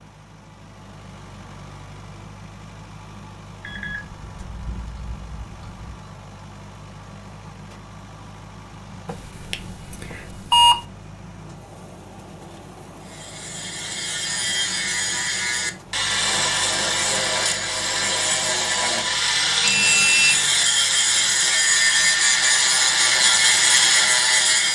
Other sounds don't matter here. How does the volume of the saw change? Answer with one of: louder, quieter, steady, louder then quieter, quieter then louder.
louder.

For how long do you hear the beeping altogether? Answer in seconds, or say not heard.
5 s.